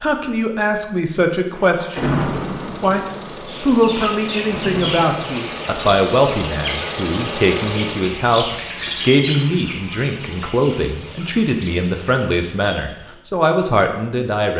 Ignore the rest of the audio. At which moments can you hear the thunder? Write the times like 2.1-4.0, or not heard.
1.6-5.3.